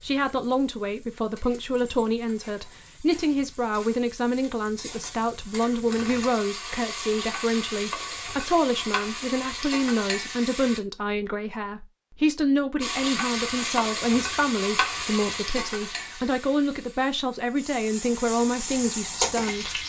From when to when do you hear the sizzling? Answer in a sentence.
You can hear the sizzling from 0.0 to 10.8 s and from 12.8 to 19.8 s.